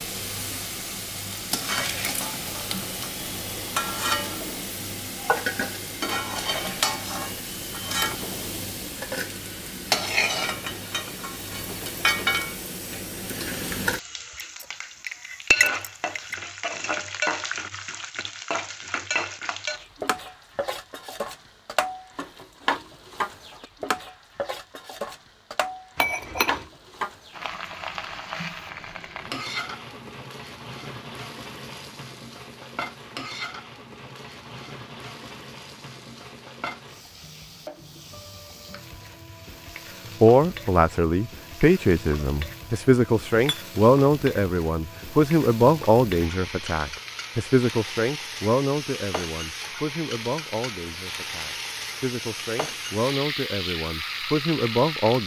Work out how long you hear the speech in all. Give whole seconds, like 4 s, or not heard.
15 s.